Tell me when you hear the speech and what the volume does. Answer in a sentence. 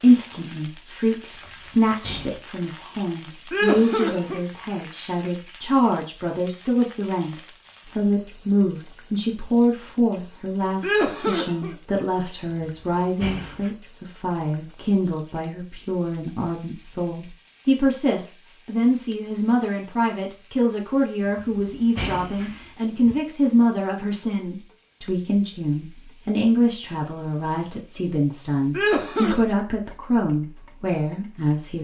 You can hear the speech from 0.0 to 31.8 s, at a steady volume.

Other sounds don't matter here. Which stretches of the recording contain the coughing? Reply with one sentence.
The coughing can be heard from 3.5 to 4.4 s, from 10.8 to 11.8 s and from 28.7 to 29.4 s.